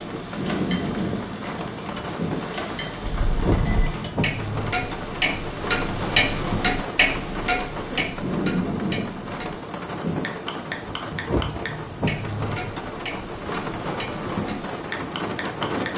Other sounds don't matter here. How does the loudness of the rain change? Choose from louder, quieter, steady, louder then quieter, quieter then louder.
steady.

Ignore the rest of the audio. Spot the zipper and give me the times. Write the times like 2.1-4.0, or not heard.
not heard.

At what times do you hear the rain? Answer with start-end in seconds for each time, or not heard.
0.0-15.9.